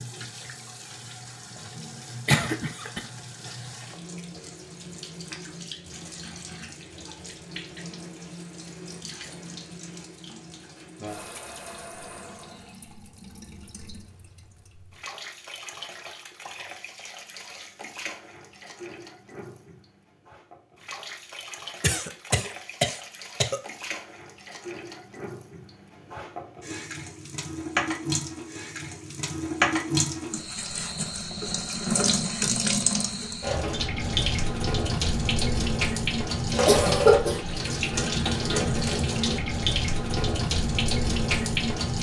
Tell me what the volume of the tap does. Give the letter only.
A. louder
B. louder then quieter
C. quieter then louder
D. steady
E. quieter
A.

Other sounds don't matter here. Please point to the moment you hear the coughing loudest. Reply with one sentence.
The loudest moment of the coughing is at 37 seconds.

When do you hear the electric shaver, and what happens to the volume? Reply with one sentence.
The electric shaver can't be heard in this clip.